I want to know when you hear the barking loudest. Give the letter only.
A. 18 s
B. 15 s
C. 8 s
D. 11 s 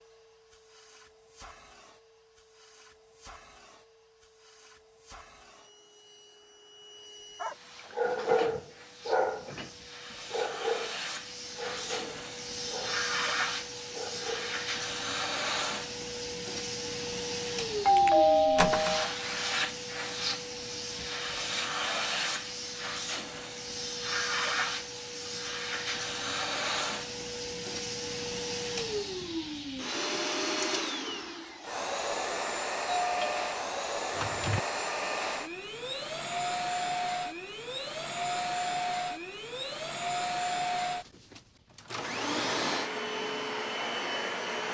C.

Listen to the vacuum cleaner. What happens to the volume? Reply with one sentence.
The loudness of the vacuum cleaner goes up.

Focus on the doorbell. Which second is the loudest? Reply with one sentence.
The volume of the doorbell peaks at 18 seconds.